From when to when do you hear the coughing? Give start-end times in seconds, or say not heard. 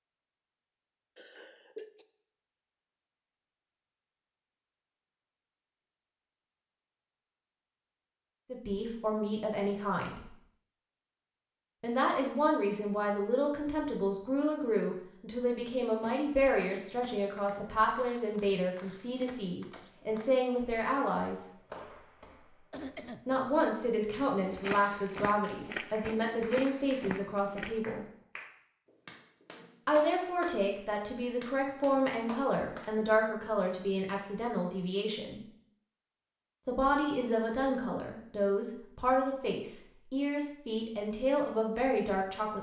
1.1-2.0, 22.7-23.2.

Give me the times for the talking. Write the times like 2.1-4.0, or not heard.
8.5-10.3, 11.8-21.4, 23.2-28.1, 29.9-35.4, 36.6-42.5.